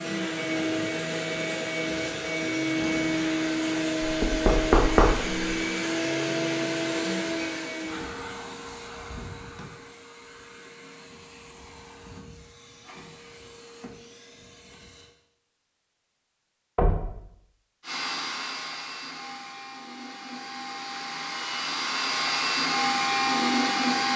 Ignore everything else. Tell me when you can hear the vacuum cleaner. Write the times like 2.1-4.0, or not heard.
0.0-15.1, 17.8-24.1.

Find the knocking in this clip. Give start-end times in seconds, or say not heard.
4.0-5.5, 16.8-17.2.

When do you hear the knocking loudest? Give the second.
5 s.